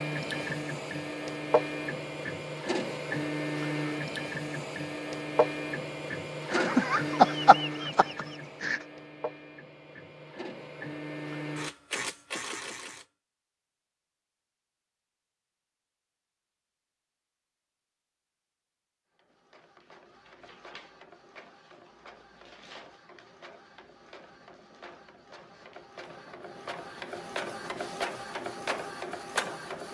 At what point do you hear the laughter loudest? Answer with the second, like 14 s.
7 s.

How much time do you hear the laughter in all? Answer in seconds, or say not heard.
2 s.